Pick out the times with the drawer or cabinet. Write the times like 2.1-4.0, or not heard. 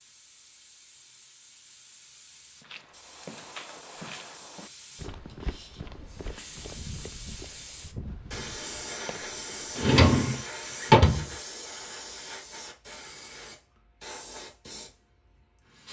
9.8-11.2.